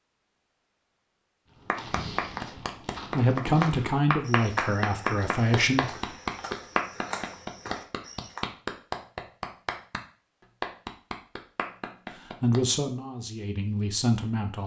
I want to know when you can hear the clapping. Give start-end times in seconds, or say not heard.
1.6-10.0, 10.6-12.6.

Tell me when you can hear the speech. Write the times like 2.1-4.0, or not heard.
3.1-6.2, 12.2-14.6.